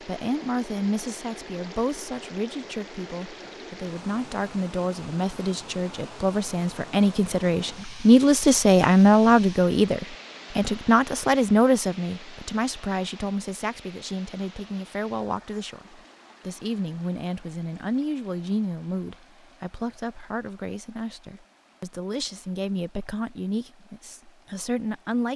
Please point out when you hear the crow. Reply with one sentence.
The crow can't be heard in this clip.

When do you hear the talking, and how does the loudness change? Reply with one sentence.
The talking can be heard from 0.0 to 25.3 s, getting louder then quieter.